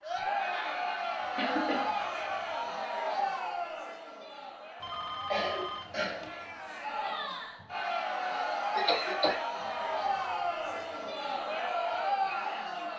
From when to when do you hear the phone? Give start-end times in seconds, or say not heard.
1.2-2.8, 4.8-6.3, 9.6-11.2.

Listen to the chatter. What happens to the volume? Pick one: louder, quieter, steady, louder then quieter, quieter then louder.
quieter then louder.